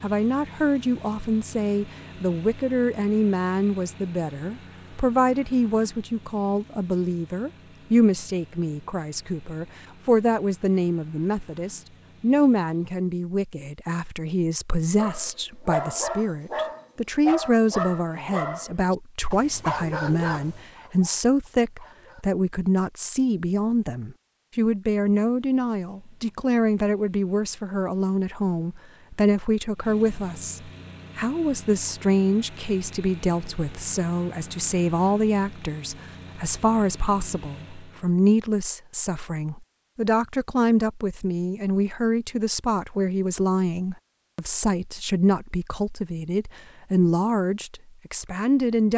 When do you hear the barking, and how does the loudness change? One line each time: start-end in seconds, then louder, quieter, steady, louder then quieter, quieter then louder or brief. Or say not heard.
14.9-22.2 quieter.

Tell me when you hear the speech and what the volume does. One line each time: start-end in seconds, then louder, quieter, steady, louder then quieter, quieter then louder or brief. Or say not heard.
0.0-48.9 steady.